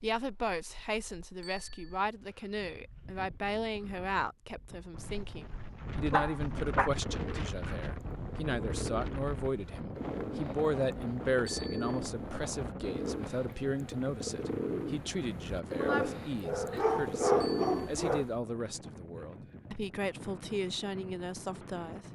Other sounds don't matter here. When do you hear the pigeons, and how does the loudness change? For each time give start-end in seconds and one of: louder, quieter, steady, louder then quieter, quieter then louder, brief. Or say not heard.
7.0-18.4 louder.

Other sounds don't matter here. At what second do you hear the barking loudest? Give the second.
17 s.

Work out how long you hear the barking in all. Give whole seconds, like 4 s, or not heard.
4 s.